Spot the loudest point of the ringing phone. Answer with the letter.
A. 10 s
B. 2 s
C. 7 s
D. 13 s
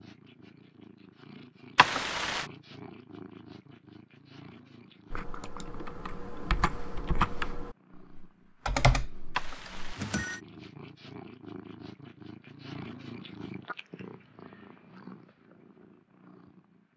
B.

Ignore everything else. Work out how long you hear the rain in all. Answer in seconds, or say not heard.
not heard.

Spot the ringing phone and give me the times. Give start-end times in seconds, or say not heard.
1.8-2.5, 9.3-10.4.